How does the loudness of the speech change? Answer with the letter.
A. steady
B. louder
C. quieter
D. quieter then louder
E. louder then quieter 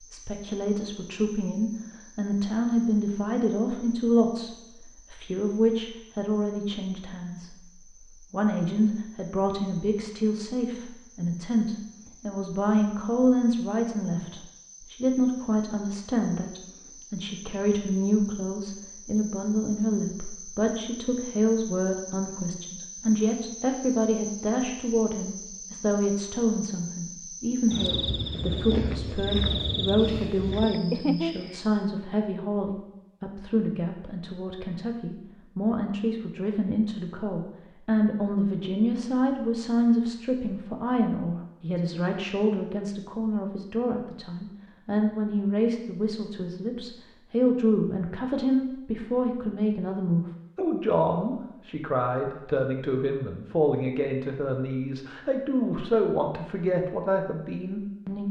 A.